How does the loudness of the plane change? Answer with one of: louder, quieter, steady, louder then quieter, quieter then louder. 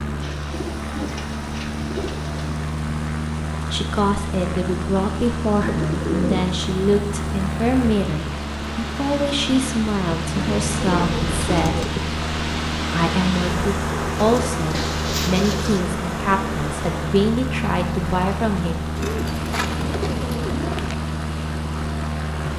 steady.